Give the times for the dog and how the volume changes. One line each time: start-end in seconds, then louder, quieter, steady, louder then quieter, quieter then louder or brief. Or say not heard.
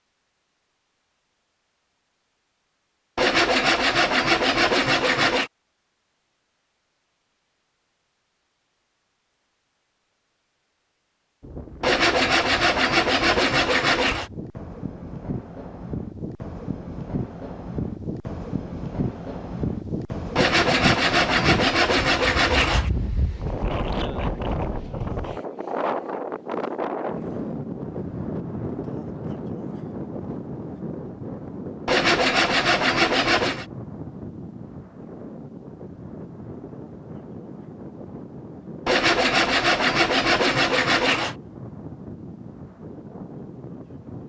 not heard.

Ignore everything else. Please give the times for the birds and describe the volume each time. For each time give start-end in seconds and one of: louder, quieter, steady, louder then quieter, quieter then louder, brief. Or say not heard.
not heard.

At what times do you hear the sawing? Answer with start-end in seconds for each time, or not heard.
3.1-5.5, 11.8-14.3, 20.4-22.9, 31.9-33.6, 38.9-41.4.